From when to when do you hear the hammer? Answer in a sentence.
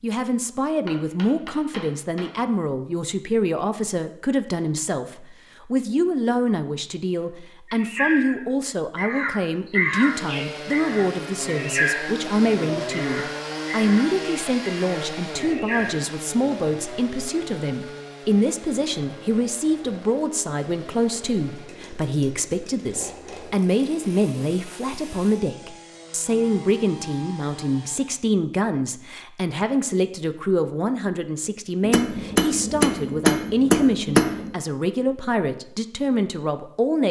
You can hear the hammer from 0.8 to 2.3 s and from 31.8 to 34.5 s.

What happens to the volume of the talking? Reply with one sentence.
The volume of the talking stays about the same.